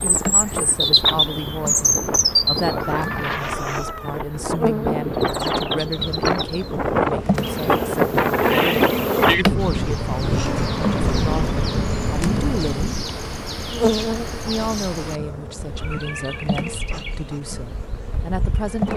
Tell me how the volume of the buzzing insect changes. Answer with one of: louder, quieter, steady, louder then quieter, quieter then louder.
louder then quieter.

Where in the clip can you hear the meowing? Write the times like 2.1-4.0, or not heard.
2.6-4.2, 15.8-16.4.